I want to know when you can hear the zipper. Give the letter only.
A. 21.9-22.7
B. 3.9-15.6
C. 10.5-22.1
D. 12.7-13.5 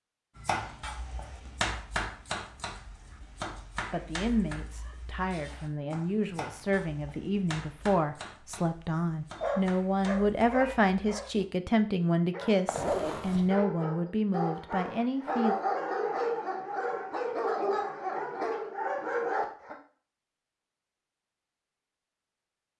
D.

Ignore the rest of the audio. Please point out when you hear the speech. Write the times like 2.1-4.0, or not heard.
3.9-15.6.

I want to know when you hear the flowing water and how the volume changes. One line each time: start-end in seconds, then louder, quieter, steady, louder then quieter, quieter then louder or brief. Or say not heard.
not heard.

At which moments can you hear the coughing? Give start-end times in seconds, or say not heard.
not heard.